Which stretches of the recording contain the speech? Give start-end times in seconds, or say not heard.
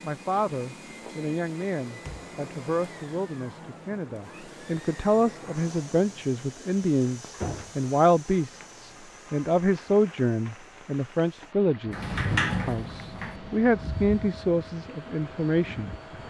0.0-15.9.